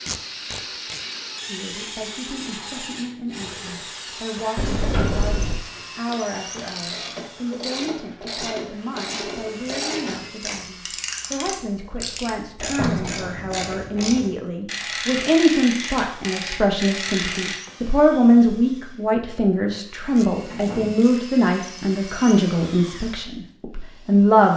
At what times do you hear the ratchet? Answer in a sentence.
The ratchet can be heard from 5.6 to 17.6 s.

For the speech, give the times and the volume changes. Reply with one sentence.
The speech can be heard from 1.4 to 24.5 s, getting louder.